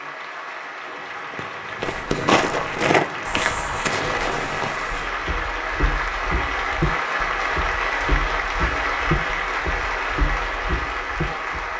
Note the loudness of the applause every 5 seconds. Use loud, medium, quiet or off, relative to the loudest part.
medium, loud, loud.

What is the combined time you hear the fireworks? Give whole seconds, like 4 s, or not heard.
3 s.